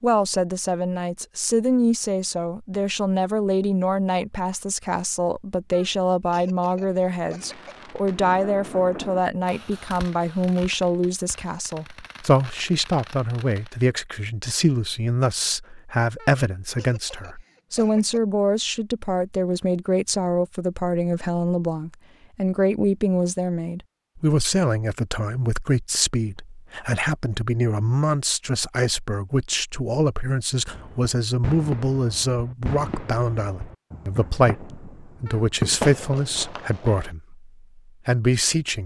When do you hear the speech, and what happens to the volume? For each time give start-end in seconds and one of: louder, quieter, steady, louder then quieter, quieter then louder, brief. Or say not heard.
0.0-38.8 steady.